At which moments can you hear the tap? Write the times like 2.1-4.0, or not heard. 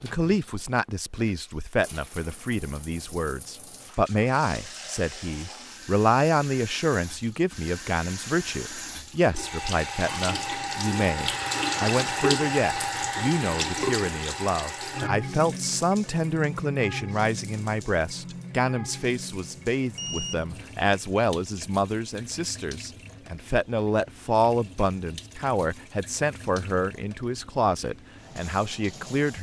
0.0-29.3.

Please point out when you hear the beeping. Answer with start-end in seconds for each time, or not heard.
19.9-20.8.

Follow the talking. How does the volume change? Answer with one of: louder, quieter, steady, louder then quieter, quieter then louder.
steady.